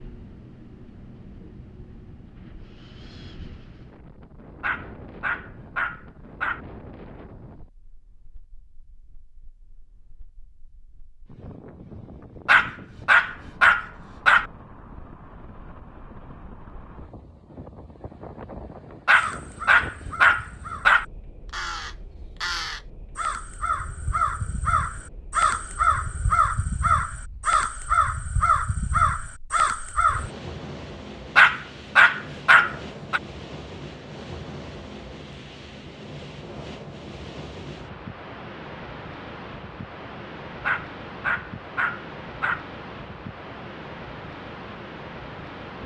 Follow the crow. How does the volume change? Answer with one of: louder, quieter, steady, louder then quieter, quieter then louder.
louder.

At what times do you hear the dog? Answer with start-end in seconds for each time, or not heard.
4.6-6.6, 12.4-14.4, 19.1-21.1, 31.4-33.2, 40.6-42.6.